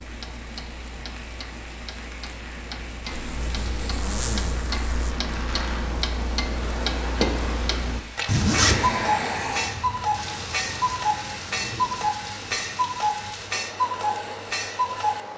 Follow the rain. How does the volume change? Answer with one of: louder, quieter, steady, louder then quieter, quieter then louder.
louder then quieter.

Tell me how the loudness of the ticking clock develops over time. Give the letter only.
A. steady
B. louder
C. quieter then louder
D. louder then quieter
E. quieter
B.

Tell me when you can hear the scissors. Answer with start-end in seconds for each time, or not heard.
not heard.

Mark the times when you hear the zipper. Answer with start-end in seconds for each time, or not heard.
3.1-5.1, 8.2-9.0.